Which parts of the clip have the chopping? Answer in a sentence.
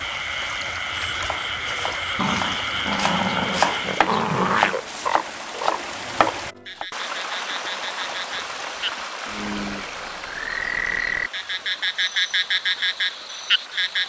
You can hear the chopping from 0.9 to 6.8 s.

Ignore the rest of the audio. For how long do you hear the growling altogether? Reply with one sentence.
The growling can be heard for 3 seconds in total.